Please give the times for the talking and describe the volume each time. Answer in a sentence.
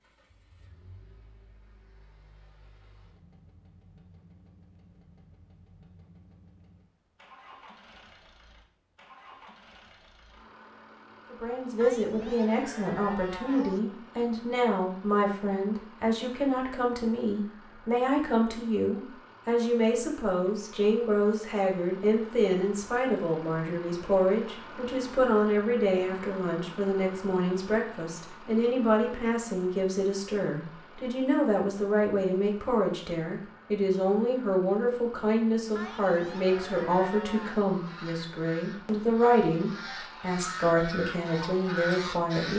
You can hear the talking from 11.3 to 42.5 s, at a steady volume.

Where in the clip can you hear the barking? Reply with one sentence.
The barking can't be heard in this clip.